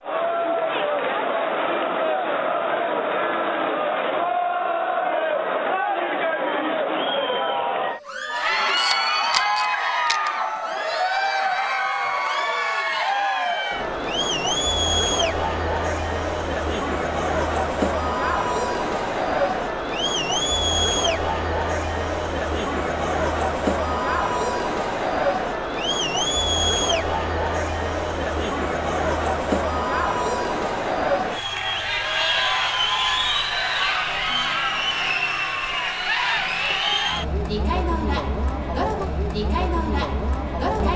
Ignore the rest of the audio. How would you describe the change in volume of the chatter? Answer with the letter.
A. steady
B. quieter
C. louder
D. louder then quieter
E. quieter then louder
A.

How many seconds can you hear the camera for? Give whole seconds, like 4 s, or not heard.
2 s.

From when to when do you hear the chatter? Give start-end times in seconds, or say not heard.
0.0-40.9.